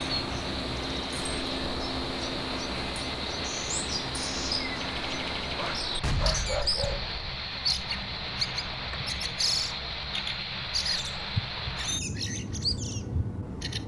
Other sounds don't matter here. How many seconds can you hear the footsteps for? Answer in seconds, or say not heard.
not heard.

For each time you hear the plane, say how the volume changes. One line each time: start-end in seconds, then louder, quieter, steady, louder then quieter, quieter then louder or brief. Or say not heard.
0.0-13.8 steady.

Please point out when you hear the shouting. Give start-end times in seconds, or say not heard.
not heard.